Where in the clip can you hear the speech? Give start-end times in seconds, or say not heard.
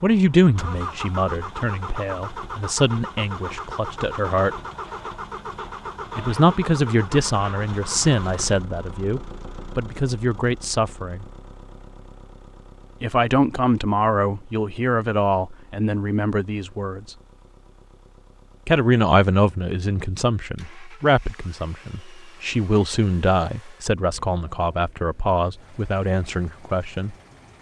0.0-4.5, 6.2-11.2, 13.0-17.1, 18.6-27.1.